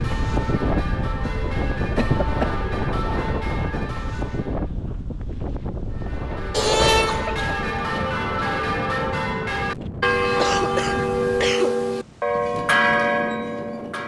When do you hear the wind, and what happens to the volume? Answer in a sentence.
You can hear the wind from 0.0 to 14.0 s, getting quieter.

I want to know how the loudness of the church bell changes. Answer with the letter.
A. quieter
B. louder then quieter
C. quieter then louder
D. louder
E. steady
D.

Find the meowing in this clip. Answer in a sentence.
You can hear the meowing from 6.5 to 7.2 s.